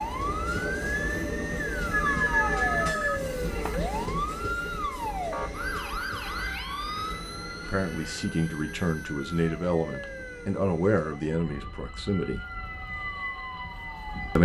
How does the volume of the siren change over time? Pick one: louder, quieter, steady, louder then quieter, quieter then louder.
quieter.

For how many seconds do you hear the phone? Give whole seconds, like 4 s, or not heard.
2 s.